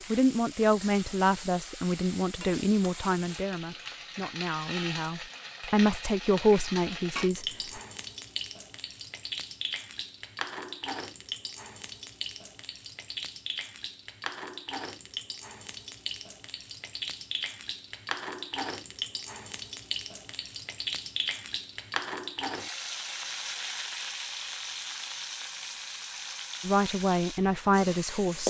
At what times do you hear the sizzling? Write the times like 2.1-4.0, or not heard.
0.0-28.4.